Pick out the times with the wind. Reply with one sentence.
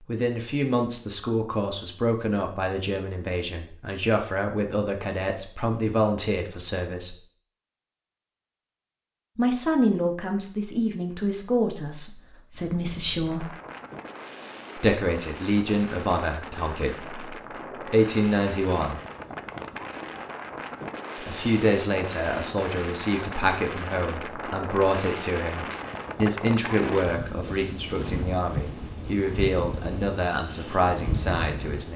You can hear the wind from 12.5 to 31.9 s.